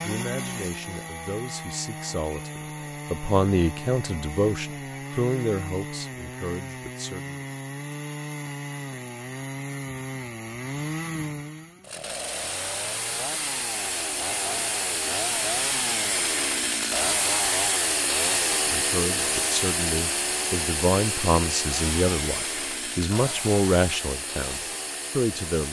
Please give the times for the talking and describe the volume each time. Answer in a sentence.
The talking can be heard from 0.0 to 7.4 s, getting louder then quieter; and from 18.2 to 25.6 s, getting louder then quieter.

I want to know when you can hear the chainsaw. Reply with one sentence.
You can hear the chainsaw from 0.0 to 25.6 s.